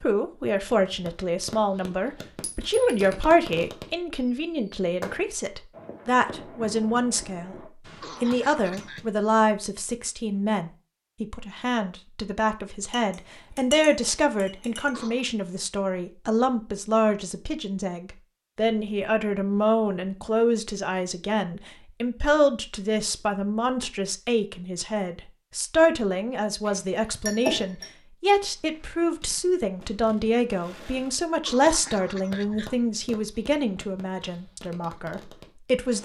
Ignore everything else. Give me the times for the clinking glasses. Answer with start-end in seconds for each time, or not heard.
2.4-3.1, 12.9-14.9, 26.6-27.9.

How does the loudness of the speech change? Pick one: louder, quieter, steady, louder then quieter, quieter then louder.
steady.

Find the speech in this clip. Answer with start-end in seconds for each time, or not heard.
0.0-7.5, 8.2-35.9.